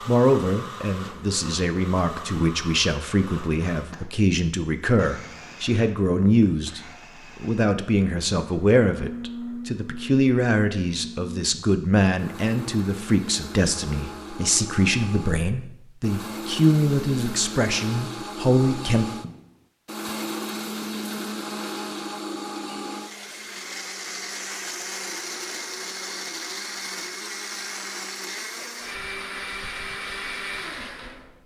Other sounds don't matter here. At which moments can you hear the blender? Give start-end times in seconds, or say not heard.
0.0-31.4.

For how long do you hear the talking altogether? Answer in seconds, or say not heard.
19 s.